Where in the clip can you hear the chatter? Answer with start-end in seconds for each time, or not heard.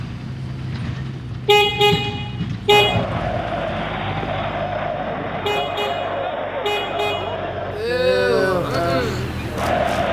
2.7-10.0.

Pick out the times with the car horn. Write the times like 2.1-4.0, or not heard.
1.4-3.0, 5.4-7.4.